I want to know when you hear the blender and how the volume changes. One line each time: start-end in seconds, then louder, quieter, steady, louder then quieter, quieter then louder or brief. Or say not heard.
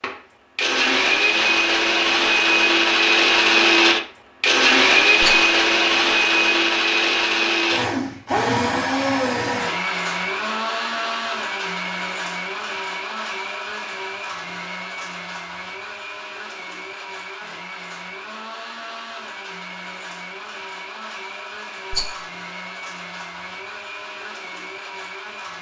0.0-25.5 quieter.